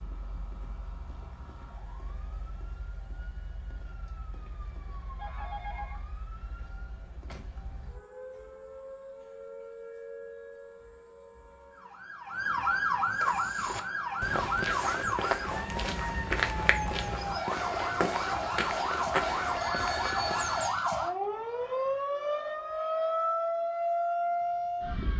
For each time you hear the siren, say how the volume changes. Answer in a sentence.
The siren can be heard from 0.0 to 25.1 s, getting louder.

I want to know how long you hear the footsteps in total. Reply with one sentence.
The footsteps can be heard for 8 seconds in total.